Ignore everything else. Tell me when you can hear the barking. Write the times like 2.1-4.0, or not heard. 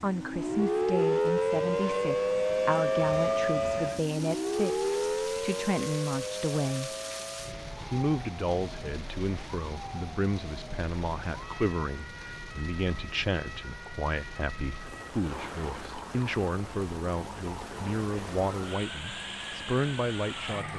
not heard.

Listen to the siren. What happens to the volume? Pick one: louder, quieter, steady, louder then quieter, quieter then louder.
quieter.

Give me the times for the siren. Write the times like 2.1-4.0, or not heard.
0.0-20.7.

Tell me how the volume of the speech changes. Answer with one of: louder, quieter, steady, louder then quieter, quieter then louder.
steady.